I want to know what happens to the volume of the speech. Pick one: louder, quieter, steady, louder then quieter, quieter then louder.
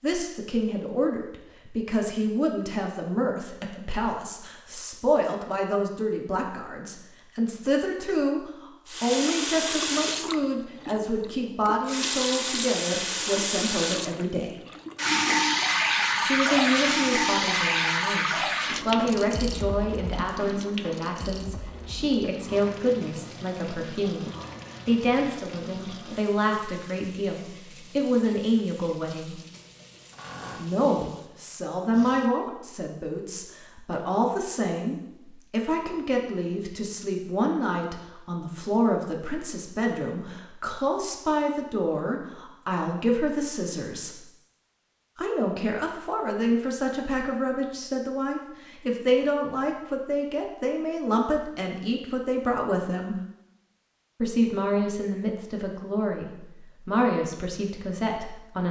steady.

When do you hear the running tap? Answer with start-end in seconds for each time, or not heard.
8.8-32.3.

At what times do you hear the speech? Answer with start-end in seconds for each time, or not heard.
0.0-14.6, 16.2-24.2, 24.9-29.4, 30.6-44.2, 45.1-53.1, 54.2-58.6.